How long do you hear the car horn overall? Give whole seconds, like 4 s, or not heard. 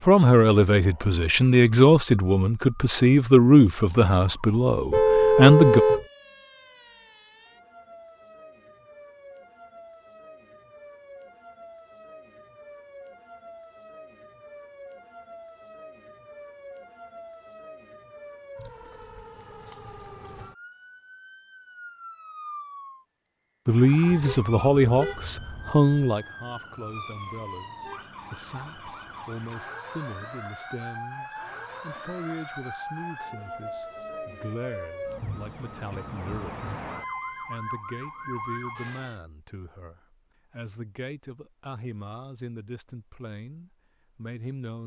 3 s.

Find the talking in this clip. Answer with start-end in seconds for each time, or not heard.
0.1-5.8, 23.6-36.5, 37.4-44.8.